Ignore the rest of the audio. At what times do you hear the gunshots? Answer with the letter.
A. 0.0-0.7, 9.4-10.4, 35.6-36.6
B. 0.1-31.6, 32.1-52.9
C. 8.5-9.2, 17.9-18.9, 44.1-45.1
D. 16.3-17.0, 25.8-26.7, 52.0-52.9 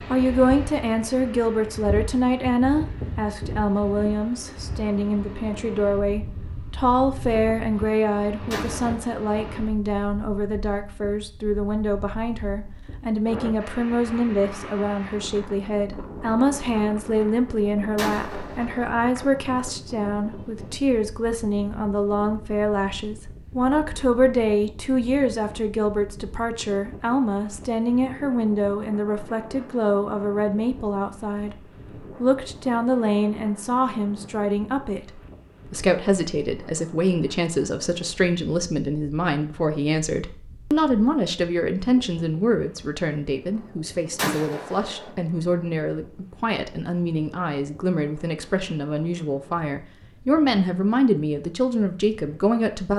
C.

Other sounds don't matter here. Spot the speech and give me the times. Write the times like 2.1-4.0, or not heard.
0.1-31.6, 32.1-52.9.